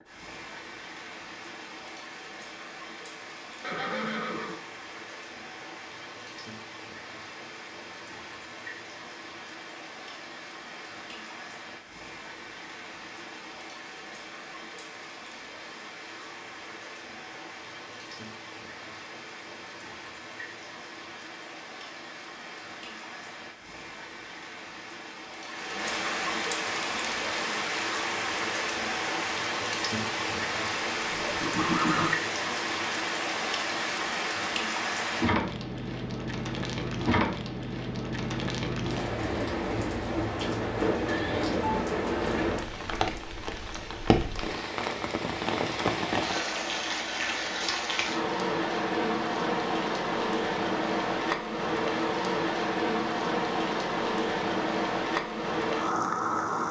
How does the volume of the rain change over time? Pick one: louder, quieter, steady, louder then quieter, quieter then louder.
louder.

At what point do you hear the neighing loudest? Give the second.
32 s.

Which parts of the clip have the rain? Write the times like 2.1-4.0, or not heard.
0.0-56.6.